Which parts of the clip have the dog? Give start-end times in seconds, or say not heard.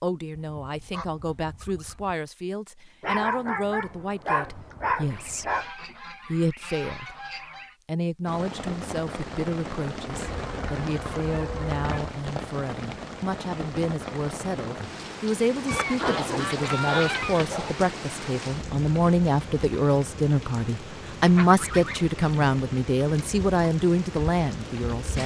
3.0-5.7, 15.7-17.7.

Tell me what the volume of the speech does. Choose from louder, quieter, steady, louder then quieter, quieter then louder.
louder.